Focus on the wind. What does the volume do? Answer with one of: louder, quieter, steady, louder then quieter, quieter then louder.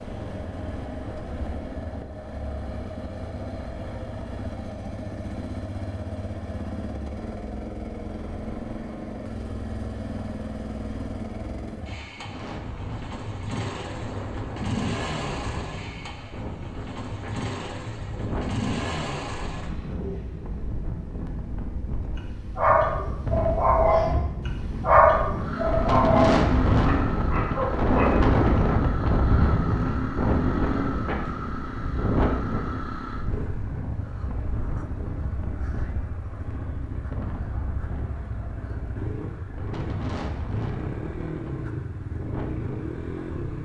louder then quieter.